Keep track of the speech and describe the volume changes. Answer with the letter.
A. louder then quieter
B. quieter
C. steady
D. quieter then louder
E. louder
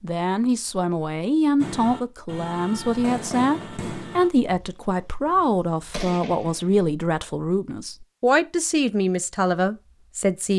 C.